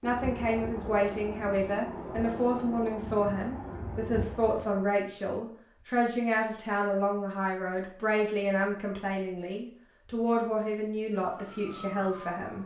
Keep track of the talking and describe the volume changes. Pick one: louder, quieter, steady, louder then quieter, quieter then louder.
steady.